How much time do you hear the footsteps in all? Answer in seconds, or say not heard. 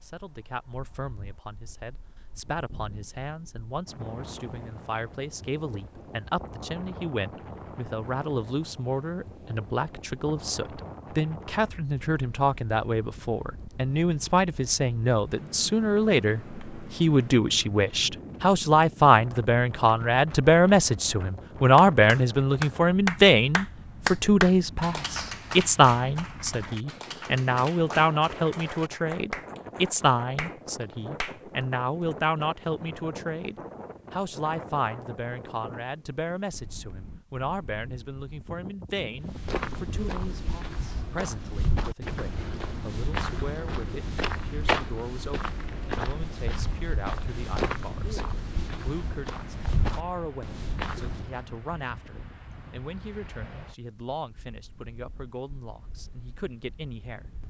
12 s.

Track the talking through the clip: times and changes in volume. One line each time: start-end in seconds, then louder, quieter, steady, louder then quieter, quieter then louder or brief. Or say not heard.
0.0-57.4 louder then quieter.